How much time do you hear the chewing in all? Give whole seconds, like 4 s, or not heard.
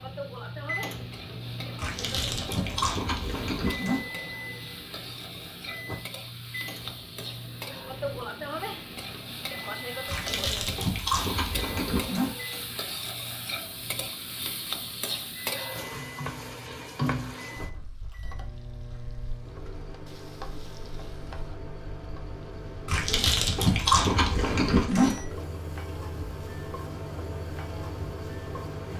7 s.